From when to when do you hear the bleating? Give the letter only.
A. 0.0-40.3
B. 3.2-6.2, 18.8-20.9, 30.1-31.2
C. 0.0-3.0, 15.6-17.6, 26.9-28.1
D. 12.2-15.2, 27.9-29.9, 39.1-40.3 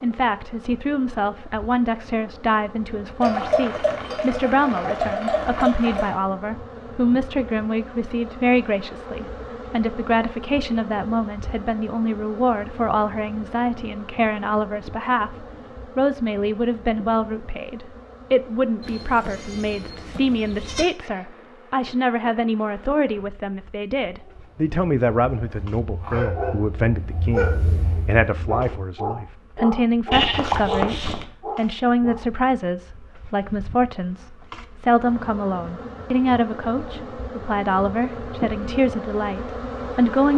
B.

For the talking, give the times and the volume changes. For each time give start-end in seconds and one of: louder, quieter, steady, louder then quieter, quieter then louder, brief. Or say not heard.
0.0-40.3 steady.